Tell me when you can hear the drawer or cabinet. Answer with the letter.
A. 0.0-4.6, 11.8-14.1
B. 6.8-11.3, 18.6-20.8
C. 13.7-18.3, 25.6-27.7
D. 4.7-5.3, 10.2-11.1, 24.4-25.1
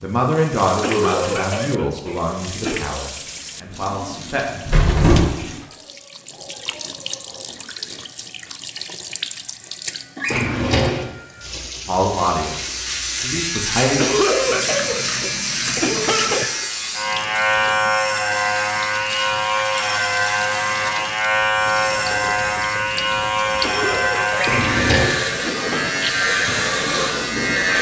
D.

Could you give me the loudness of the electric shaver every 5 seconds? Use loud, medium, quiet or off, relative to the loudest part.
off, off, medium, loud, loud, loud.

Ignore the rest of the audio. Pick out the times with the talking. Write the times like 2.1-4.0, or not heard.
0.0-4.6, 11.8-14.1.